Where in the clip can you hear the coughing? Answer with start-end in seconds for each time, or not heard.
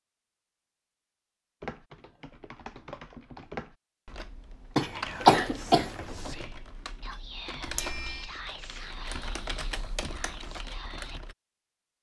4.8-6.3.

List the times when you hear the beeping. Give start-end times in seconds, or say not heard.
7.6-8.3.